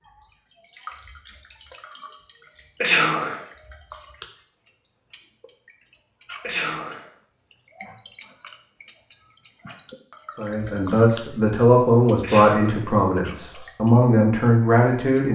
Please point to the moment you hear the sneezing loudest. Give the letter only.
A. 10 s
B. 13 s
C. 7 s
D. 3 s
D.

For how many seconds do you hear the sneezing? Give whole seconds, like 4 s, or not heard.
2 s.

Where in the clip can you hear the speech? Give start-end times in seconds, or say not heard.
10.3-15.3.